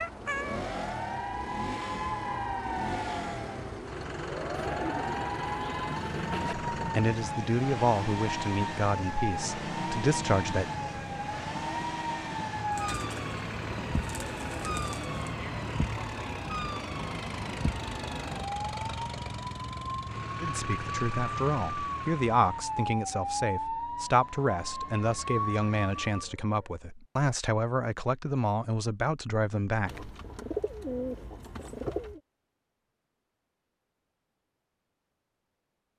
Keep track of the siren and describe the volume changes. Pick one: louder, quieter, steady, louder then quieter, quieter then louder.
steady.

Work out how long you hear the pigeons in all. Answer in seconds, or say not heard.
7 s.